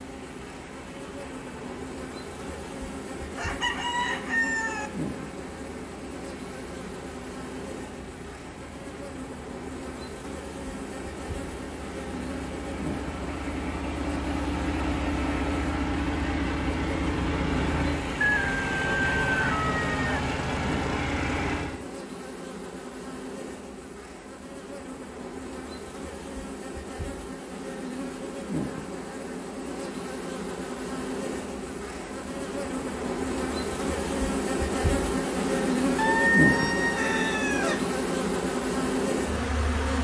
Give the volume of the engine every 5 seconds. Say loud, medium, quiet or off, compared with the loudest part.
quiet, quiet, medium, loud, loud, off, off, off.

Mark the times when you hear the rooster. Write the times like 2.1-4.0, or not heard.
3.4-4.9, 18.2-20.2, 36.0-37.9.